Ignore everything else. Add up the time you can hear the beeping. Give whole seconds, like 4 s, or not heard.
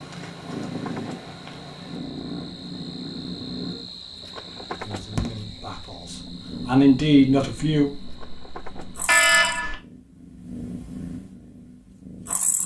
2 s.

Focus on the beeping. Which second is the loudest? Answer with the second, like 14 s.
9 s.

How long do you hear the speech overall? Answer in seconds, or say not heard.
3 s.